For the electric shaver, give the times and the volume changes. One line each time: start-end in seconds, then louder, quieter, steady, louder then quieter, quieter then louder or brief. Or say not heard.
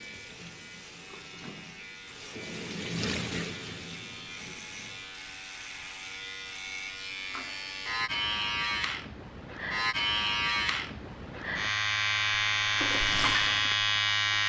0.0-14.4 louder.